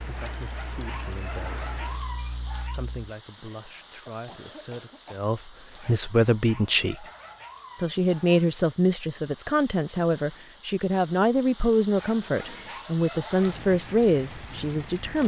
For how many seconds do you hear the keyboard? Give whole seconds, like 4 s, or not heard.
3 s.